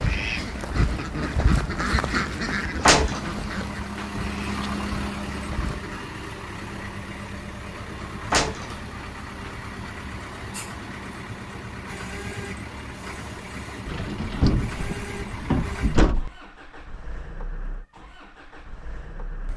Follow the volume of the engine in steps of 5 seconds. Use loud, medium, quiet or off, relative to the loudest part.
loud, loud, loud, medium.